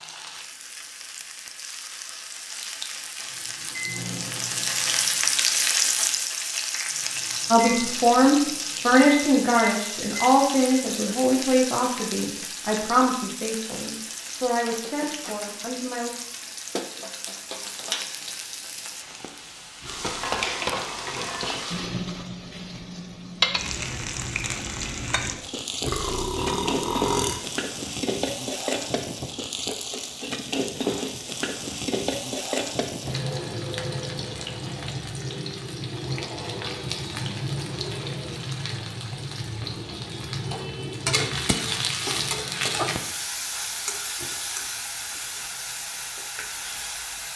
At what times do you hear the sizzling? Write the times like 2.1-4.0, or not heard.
0.0-47.3.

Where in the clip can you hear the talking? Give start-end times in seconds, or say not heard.
7.5-16.1.